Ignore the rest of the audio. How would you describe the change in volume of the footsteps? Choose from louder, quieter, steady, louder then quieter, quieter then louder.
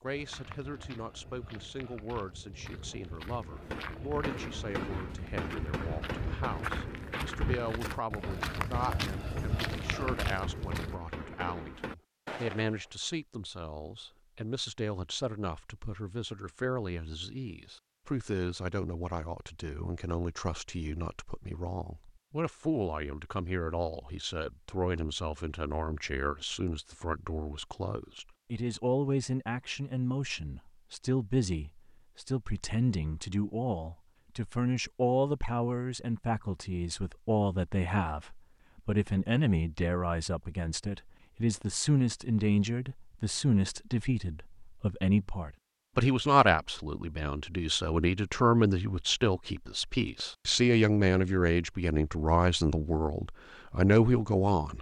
louder.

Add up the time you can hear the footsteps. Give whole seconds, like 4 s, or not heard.
11 s.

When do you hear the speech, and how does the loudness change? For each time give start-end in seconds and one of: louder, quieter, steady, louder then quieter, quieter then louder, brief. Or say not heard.
0.0-54.7 louder.